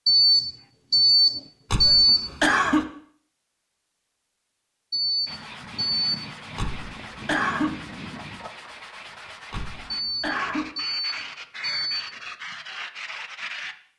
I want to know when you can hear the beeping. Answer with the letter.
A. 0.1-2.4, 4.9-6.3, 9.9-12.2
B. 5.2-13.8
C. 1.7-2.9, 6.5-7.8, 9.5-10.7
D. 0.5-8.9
A.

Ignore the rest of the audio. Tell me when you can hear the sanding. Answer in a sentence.
The sanding can be heard from 5.2 to 13.8 s.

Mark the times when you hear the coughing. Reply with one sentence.
The coughing can be heard from 1.7 to 2.9 s, from 6.5 to 7.8 s and from 9.5 to 10.7 s.